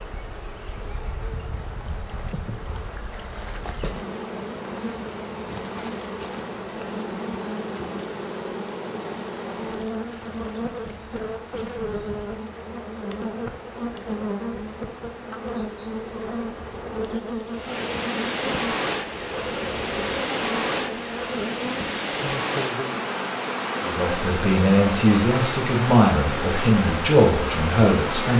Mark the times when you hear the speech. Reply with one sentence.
The speech can be heard from 23.9 to 28.3 s.